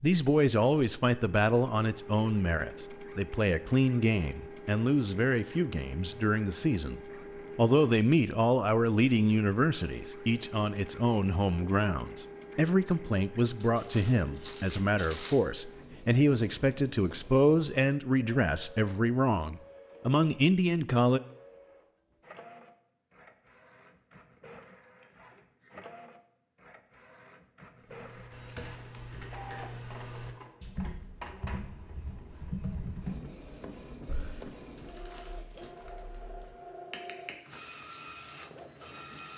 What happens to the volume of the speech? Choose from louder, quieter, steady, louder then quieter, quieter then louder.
steady.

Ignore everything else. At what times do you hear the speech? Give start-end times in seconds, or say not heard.
0.0-21.2.